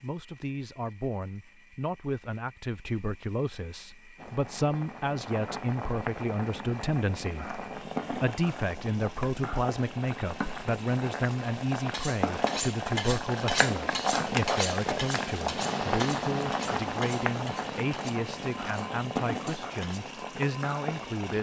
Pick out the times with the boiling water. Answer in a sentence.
You can hear the boiling water from 4.2 to 21.3 s.